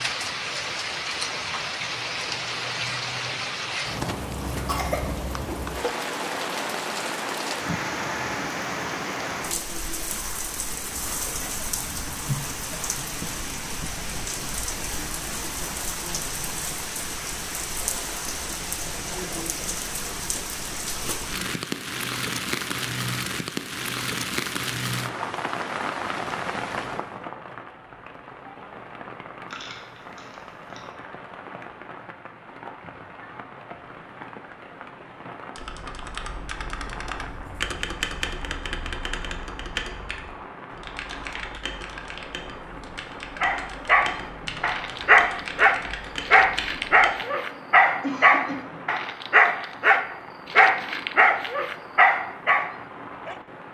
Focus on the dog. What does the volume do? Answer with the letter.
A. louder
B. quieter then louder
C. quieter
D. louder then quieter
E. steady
E.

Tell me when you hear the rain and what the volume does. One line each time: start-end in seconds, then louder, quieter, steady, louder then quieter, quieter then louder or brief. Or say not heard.
0.0-53.6 quieter.